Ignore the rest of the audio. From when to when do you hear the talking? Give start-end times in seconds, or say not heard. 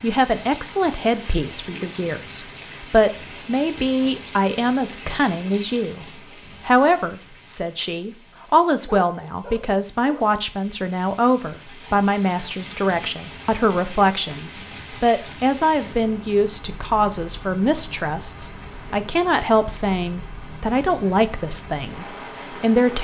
0.0-6.0, 6.7-23.0.